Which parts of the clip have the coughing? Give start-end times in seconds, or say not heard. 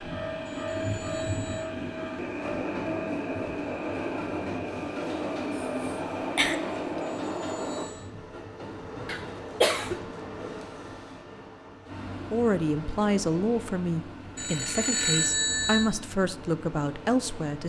5.5-7.0, 9.1-10.0.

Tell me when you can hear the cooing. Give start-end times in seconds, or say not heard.
not heard.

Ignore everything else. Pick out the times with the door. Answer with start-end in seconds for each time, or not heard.
not heard.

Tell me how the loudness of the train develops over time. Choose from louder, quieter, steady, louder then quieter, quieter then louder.
quieter.